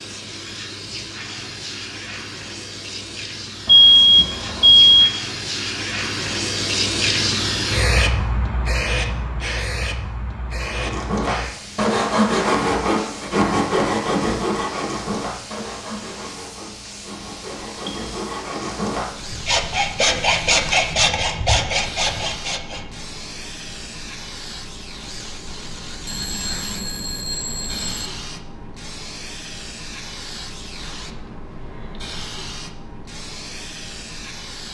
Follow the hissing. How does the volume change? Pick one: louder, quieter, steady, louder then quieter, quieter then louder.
quieter.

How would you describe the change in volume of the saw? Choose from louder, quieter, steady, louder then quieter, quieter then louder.
quieter then louder.